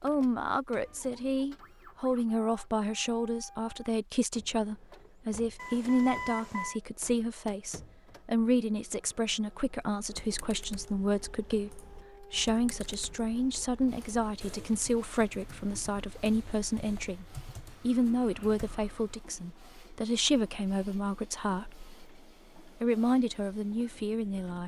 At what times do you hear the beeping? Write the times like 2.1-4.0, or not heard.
5.5-6.8.